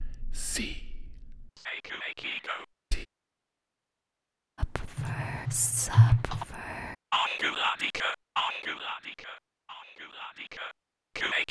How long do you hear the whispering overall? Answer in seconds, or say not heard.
10 s.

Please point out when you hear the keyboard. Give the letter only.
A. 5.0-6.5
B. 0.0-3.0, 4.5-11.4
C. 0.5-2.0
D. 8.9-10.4
A.